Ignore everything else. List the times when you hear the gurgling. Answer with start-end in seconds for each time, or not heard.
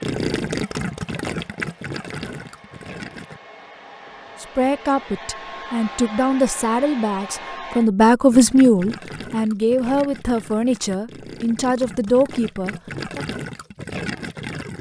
0.0-3.4, 8.3-14.7.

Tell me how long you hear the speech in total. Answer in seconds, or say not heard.
9 s.